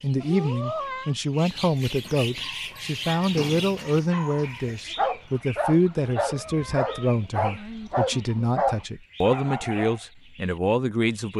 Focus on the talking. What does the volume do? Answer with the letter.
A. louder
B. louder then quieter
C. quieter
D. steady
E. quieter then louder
D.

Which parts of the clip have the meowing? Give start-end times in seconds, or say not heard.
0.2-1.1, 5.9-7.2.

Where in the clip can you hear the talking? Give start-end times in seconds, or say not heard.
0.0-11.3.